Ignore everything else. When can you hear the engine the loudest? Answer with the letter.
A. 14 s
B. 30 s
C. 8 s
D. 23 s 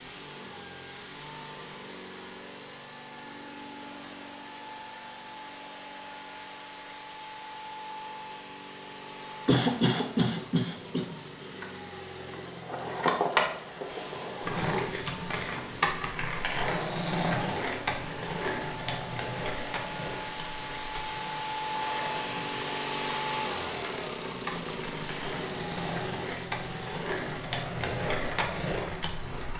D.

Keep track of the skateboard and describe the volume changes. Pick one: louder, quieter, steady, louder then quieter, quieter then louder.
quieter then louder.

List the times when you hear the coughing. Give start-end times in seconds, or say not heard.
9.4-11.1.